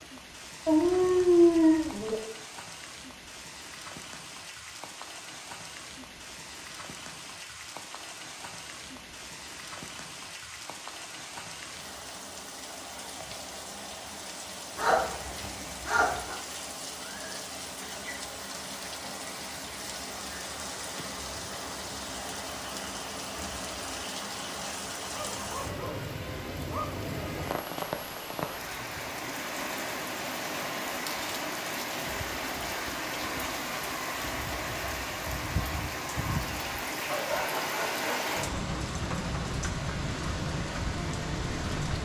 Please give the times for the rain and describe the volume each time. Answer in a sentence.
You can hear the rain from 0.0 to 42.0 s, getting louder.